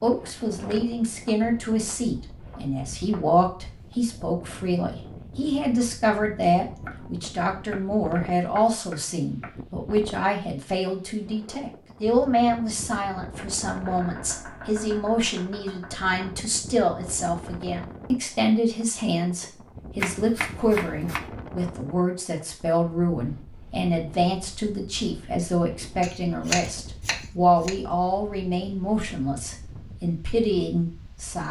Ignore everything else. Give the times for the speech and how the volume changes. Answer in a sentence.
You can hear the speech from 0.0 to 31.4 s, at a steady volume.